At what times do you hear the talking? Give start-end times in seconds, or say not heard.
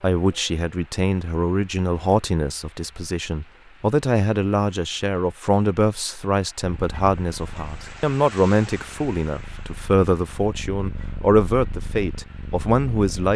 0.0-13.3.